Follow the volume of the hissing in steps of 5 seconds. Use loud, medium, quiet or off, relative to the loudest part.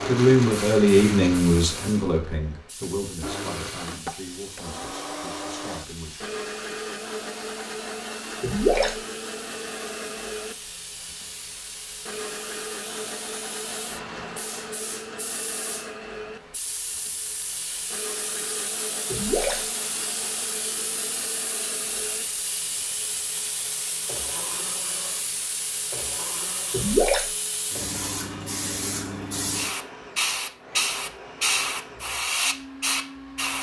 quiet, quiet, quiet, medium, medium, medium, loud.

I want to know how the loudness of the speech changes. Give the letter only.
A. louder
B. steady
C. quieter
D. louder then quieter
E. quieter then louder
C.